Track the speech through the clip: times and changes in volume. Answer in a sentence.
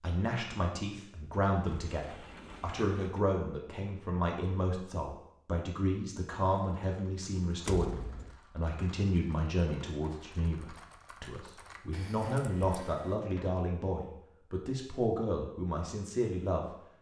You can hear the speech from 0.0 to 16.8 s, at a steady volume.